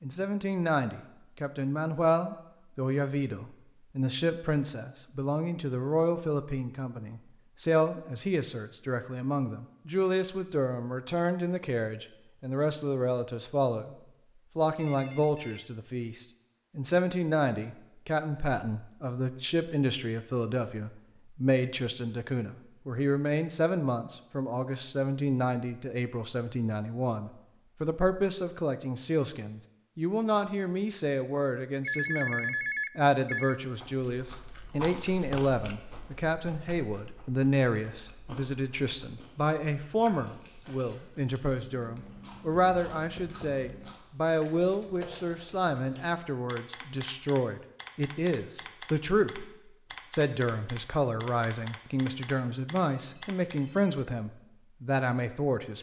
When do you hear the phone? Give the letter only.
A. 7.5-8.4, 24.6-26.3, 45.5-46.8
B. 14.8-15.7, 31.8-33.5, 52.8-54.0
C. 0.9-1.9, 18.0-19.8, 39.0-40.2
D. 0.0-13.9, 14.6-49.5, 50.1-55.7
B.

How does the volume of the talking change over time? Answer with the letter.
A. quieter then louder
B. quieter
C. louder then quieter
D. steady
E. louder
D.